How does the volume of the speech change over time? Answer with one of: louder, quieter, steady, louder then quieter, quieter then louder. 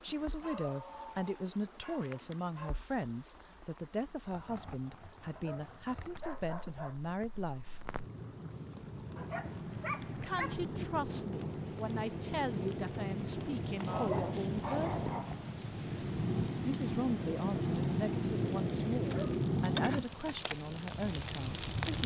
steady.